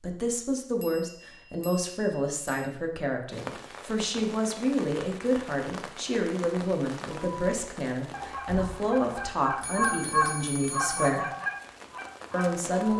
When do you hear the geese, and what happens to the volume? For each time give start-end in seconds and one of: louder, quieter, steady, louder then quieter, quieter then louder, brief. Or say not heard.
7.2-12.9 louder then quieter.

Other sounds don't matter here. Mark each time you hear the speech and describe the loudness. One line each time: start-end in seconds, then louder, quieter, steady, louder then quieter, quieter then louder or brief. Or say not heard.
0.0-11.2 steady
12.3-12.9 brief.